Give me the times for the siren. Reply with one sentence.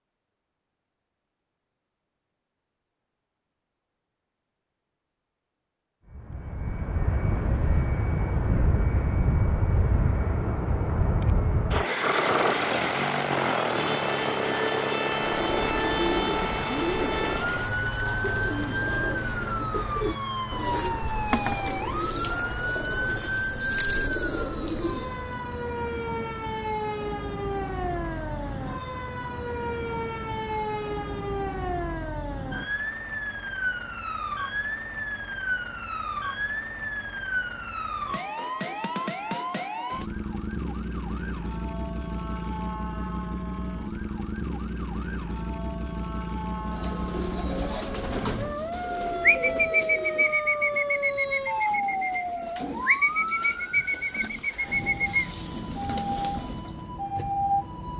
The siren can be heard from 13.3 to 57.9 s.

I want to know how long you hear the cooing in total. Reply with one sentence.
The cooing can be heard for 20 seconds in total.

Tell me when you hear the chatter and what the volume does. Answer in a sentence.
You can't hear the chatter here.